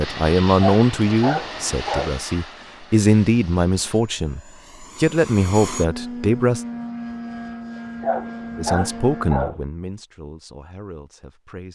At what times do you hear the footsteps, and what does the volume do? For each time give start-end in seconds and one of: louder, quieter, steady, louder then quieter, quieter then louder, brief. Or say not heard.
not heard.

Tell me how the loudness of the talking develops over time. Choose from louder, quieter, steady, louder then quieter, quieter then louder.
quieter.